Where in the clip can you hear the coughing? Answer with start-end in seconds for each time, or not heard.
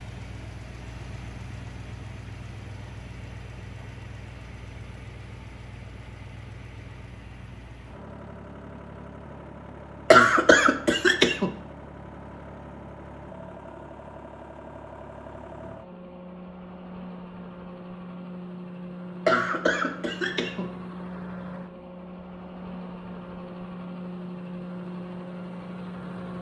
10.1-11.5, 19.2-20.6.